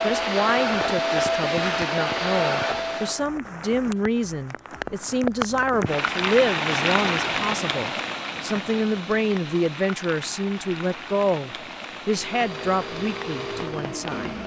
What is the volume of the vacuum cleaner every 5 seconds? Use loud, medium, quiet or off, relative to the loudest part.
loud, off, medium.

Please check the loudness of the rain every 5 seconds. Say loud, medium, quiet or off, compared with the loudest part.
medium, loud, medium.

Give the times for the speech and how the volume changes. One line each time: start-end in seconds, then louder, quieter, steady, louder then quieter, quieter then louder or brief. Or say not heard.
0.0-14.3 steady.